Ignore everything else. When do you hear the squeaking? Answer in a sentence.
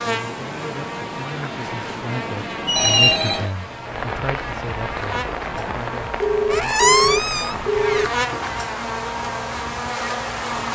You can hear the squeaking from 2.6 to 3.2 s and from 6.5 to 8.1 s.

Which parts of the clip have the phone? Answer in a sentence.
The phone can be heard from 2.8 to 3.8 s and from 6.2 to 8.2 s.